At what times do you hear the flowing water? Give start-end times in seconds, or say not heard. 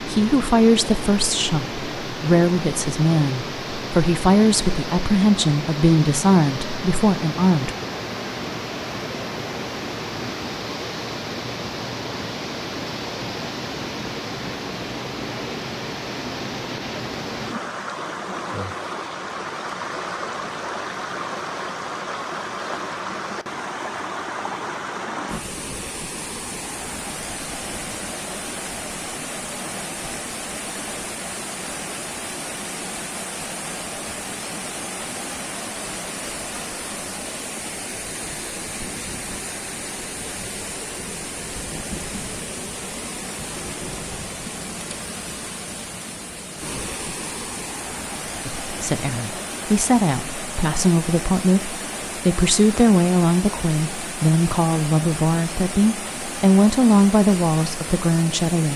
0.0-58.7.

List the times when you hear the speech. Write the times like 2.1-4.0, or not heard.
0.0-7.7, 48.7-58.7.